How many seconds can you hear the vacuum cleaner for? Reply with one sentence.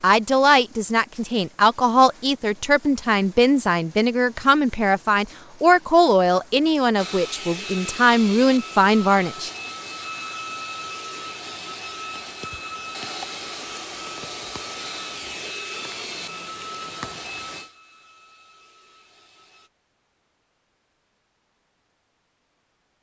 You can hear the vacuum cleaner for 13 seconds altogether.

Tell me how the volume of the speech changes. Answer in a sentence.
The volume of the speech stays about the same.